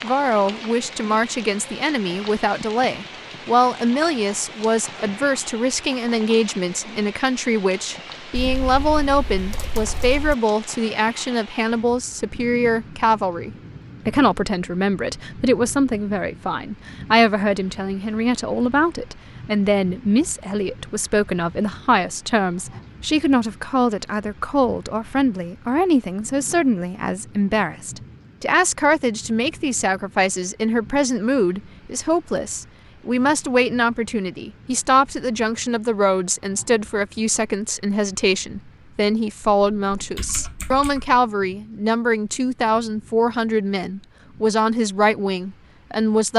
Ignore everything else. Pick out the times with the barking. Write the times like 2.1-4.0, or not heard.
not heard.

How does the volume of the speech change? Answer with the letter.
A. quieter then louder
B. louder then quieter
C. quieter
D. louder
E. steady
E.